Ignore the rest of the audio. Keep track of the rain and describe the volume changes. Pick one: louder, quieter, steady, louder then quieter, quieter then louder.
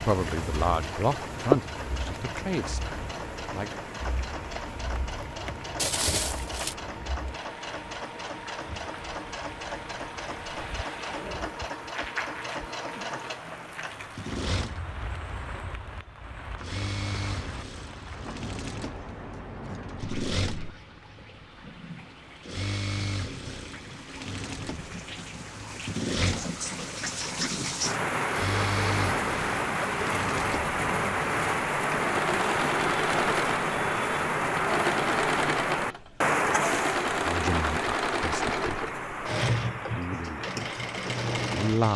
quieter then louder.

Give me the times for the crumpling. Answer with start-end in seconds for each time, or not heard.
5.8-6.8.